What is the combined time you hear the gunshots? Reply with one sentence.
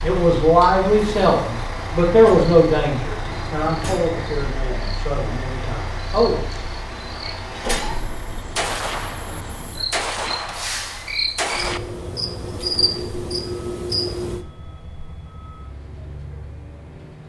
You can hear the gunshots for 3 seconds altogether.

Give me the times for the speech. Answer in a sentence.
The speech can be heard from 0.0 to 6.5 s.